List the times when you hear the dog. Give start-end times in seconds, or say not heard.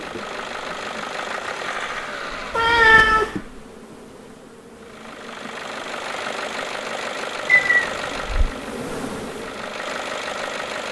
not heard.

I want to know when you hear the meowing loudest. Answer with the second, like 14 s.
3 s.